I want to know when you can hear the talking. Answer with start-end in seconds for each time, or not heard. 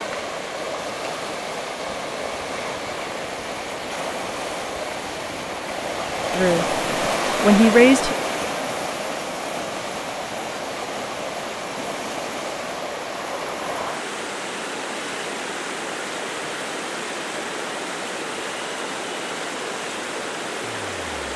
6.3-6.8, 7.4-8.2.